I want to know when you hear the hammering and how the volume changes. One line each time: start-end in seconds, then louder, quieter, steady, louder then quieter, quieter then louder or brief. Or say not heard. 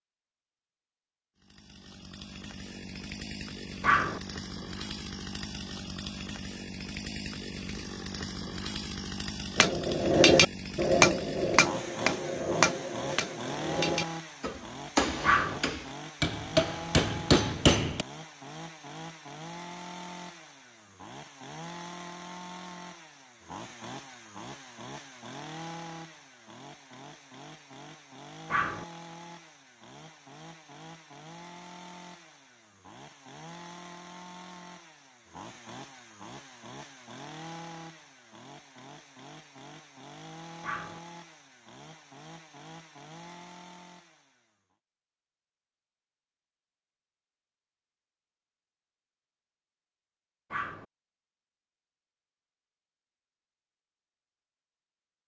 9.6-18.1 quieter then louder.